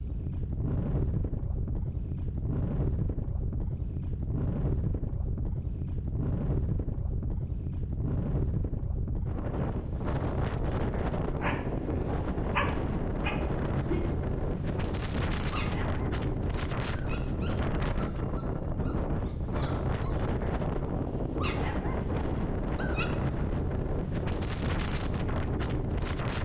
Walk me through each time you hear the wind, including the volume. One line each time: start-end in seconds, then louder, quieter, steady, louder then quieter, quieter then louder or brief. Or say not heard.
0.0-26.4 steady.